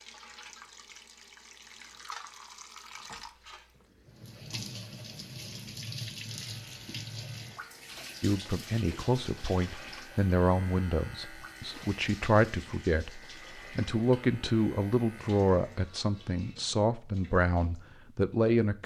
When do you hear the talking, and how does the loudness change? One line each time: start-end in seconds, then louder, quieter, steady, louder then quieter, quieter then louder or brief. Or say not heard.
8.2-18.8 steady.